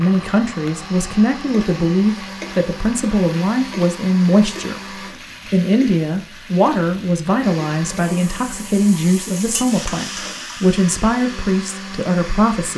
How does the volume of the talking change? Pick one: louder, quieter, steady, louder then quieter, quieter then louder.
steady.